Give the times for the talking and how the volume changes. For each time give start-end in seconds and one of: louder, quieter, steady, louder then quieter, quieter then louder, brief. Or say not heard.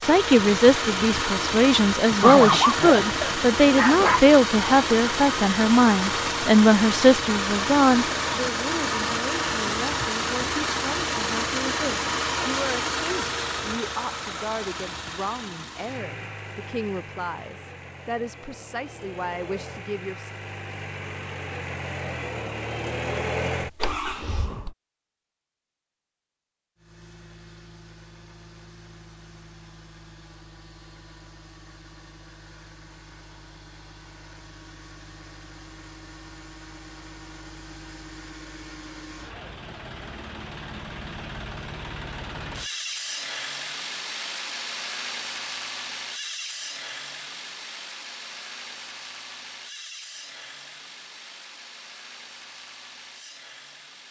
0.0-20.3 quieter.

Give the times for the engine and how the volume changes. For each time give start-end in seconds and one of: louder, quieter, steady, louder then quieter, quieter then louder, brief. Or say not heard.
0.0-24.8 quieter then louder
26.8-54.0 louder then quieter.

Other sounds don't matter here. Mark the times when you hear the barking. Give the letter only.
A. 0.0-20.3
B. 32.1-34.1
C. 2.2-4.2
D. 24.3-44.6
C.